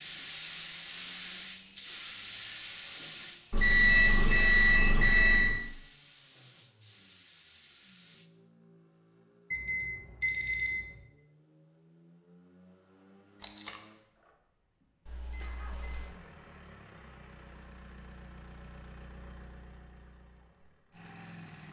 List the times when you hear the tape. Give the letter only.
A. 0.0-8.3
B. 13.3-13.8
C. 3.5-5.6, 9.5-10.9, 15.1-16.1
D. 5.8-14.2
B.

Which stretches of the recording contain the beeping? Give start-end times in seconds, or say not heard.
3.5-5.6, 9.5-10.9, 15.1-16.1.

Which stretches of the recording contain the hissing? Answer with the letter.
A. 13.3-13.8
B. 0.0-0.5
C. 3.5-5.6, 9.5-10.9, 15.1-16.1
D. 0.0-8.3
D.